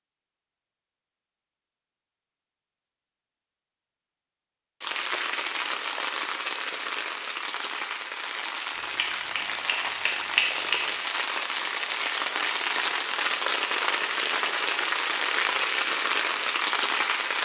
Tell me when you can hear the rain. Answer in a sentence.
You can hear the rain from 4.8 to 17.4 s.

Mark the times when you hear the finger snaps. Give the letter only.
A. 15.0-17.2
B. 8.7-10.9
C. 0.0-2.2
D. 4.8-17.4
B.